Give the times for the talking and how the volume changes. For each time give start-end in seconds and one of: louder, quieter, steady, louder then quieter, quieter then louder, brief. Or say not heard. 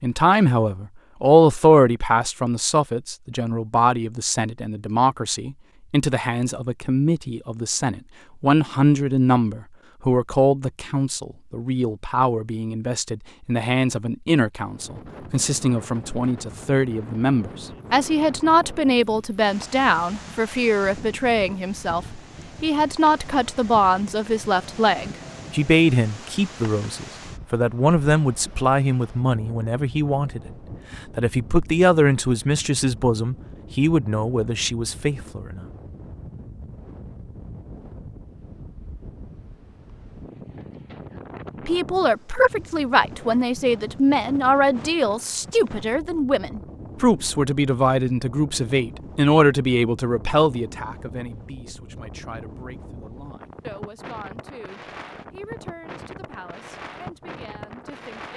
0.0-35.6 steady
41.6-58.3 quieter.